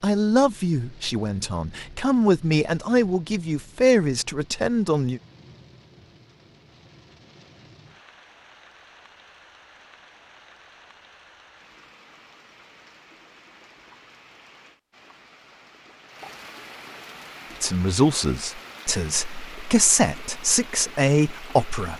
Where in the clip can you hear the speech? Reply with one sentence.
The speech can be heard from 0.0 to 5.2 s and from 17.6 to 21.9 s.